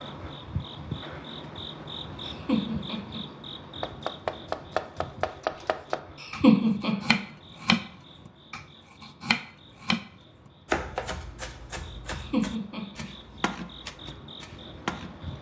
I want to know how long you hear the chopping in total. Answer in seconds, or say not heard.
11 s.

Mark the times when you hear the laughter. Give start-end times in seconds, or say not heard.
2.2-3.2, 6.2-7.2, 12.1-13.1.